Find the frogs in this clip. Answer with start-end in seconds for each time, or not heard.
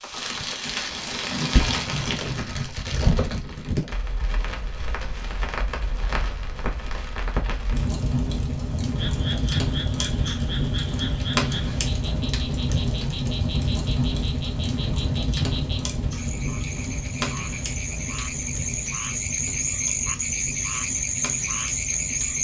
8.9-22.3.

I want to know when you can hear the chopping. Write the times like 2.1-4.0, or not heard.
not heard.